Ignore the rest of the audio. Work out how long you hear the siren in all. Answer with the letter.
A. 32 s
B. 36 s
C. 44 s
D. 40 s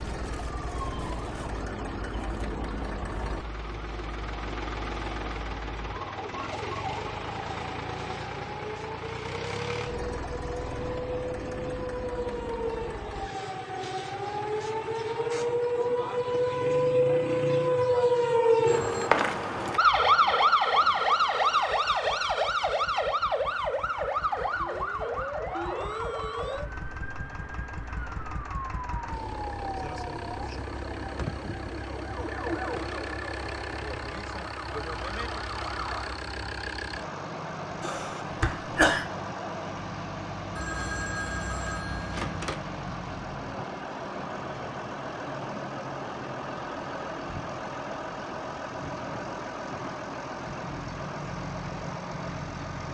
B.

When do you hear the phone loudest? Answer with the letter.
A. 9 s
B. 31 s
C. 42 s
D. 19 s
D.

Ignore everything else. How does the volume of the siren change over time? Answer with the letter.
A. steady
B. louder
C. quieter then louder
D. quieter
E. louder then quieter
E.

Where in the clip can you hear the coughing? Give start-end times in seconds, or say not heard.
37.8-39.0.